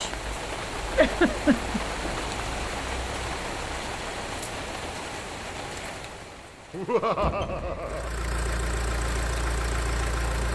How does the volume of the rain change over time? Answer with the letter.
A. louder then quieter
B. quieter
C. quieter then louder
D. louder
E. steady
B.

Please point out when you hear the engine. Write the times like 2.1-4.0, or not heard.
7.8-10.5.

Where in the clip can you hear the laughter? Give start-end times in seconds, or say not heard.
0.9-1.8, 6.7-8.1.